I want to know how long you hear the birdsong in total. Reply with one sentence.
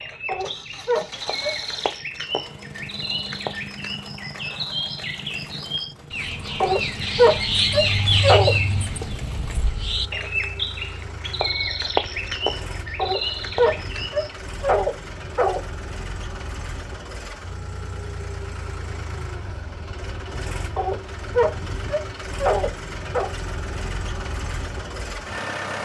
You can hear the birdsong for 14 seconds altogether.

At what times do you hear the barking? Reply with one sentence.
The barking can be heard from 0.2 to 1.6 s, from 6.6 to 8.6 s, from 12.9 to 15.6 s and from 20.8 to 23.4 s.